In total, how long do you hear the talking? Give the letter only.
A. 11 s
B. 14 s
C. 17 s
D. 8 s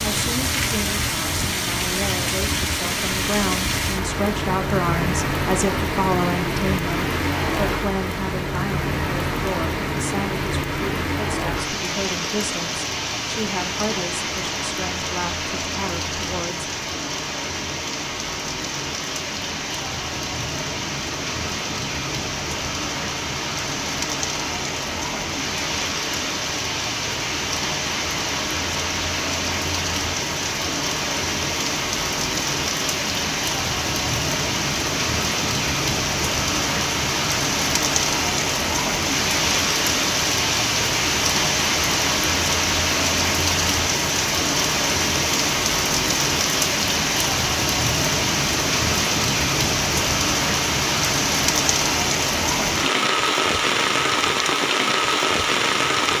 C.